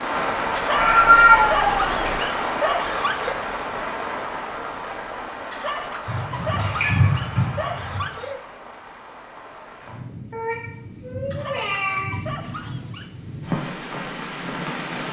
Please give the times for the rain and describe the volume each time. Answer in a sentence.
You can hear the rain from 0.0 to 15.0 s, getting quieter then louder.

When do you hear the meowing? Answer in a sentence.
The meowing can be heard from 0.8 to 2.2 s, from 6.0 to 8.1 s and from 10.3 to 12.2 s.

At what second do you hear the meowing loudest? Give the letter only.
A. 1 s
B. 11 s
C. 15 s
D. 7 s
A.